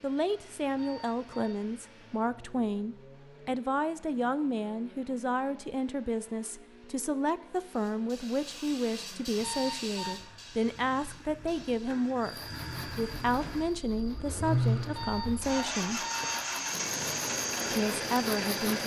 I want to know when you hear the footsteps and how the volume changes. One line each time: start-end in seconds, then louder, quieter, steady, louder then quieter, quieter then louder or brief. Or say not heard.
not heard.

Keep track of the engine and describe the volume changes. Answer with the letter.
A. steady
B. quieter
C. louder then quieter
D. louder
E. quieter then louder
D.